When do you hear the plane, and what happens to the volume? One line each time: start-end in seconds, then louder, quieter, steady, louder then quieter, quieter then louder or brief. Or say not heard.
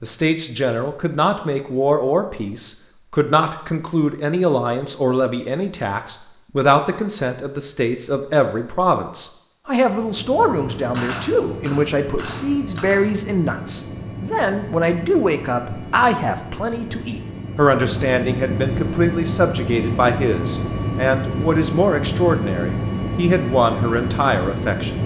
9.8-25.0 louder.